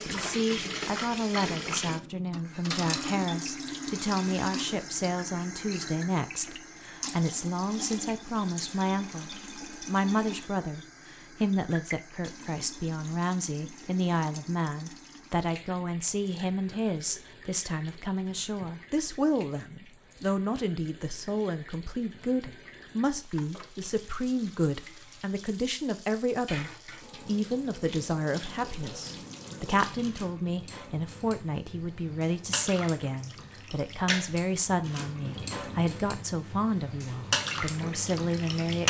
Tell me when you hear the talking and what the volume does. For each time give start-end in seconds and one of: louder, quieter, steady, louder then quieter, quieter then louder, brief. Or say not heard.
0.1-38.8 steady.